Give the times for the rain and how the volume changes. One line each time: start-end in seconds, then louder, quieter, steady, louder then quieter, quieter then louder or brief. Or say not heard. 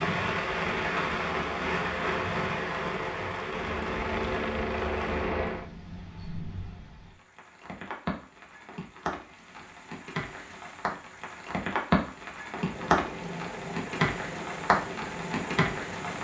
0.0-16.2 quieter then louder.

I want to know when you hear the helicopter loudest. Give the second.
5 s.